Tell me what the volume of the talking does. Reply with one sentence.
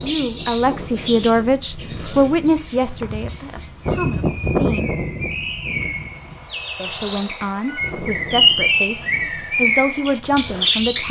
The volume of the talking goes down, then up.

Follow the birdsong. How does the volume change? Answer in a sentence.
The loudness of the birdsong goes down, then up.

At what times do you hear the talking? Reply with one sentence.
The talking can be heard from 0.0 to 4.9 s and from 6.8 to 11.0 s.